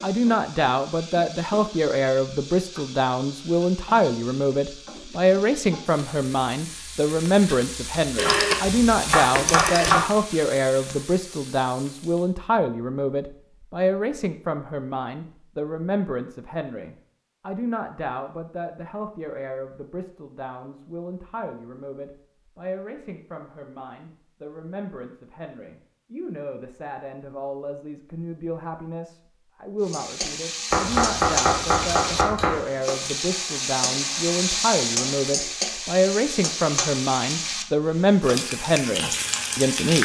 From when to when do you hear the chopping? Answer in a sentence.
The chopping can be heard from 8.2 to 10.0 s and from 30.7 to 32.6 s.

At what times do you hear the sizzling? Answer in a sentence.
The sizzling can be heard from 0.0 to 12.3 s and from 29.9 to 40.0 s.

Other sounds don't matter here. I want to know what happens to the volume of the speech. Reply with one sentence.
The volume of the speech goes down, then up.